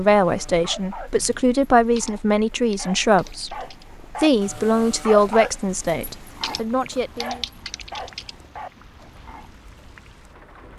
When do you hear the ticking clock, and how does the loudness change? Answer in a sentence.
You can't hear the ticking clock here.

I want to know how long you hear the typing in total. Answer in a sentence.
The typing can be heard for 4 seconds in total.